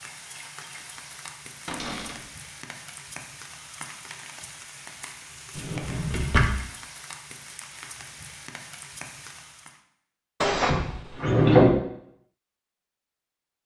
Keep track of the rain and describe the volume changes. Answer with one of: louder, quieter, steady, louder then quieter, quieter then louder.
steady.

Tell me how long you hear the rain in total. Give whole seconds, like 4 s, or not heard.
10 s.